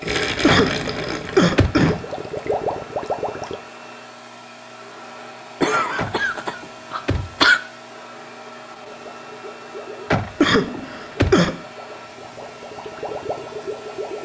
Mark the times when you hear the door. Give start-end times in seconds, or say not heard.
0.5-1.8, 6.0-7.5, 10.1-11.4.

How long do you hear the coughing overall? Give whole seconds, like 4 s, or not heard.
5 s.